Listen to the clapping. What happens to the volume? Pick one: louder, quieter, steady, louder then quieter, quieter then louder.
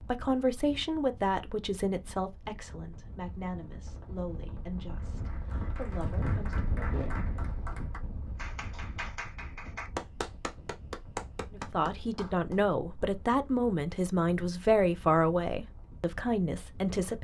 louder.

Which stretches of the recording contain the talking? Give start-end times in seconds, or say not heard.
0.0-6.7, 11.5-17.1.